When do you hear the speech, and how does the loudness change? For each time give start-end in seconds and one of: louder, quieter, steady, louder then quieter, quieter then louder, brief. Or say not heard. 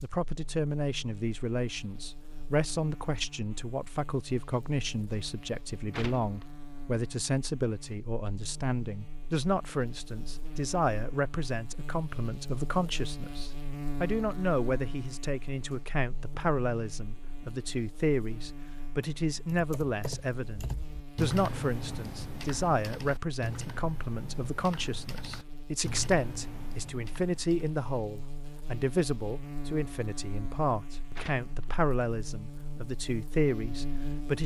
0.0-34.4 steady.